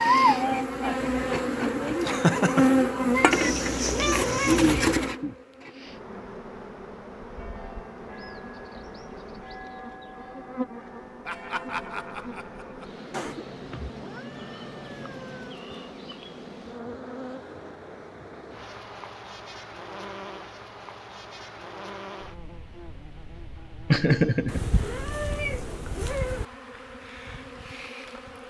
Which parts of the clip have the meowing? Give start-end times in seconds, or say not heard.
3.3-4.8, 13.1-15.6, 24.4-26.4.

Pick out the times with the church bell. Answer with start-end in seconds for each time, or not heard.
7.3-12.7.